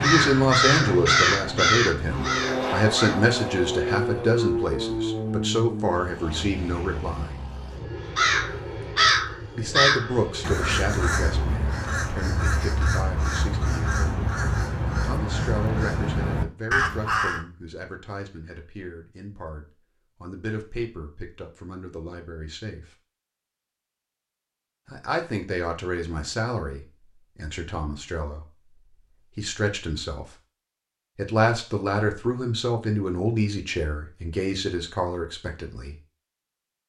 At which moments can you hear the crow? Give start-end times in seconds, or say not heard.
0.0-3.1, 8.2-17.4.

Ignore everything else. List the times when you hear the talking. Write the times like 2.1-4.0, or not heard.
0.0-7.3, 9.6-14.2, 15.0-22.9, 24.9-28.4, 29.4-30.3, 31.1-36.0.